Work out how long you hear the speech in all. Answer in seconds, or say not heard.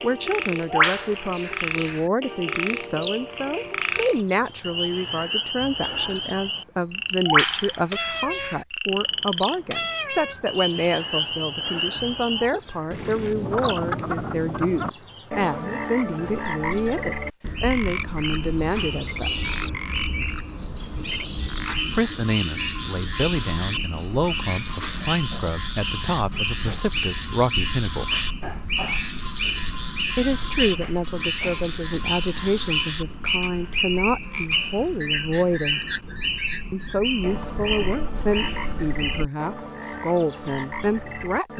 36 s.